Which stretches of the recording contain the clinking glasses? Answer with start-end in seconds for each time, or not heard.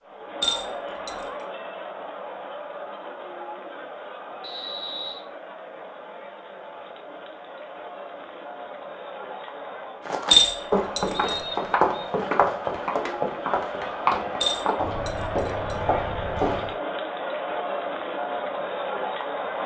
0.4-1.2, 10.3-11.3, 14.4-15.8.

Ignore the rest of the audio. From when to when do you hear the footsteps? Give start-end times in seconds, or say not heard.
10.1-16.8.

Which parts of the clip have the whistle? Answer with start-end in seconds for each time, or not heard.
4.4-5.2, 11.1-12.1.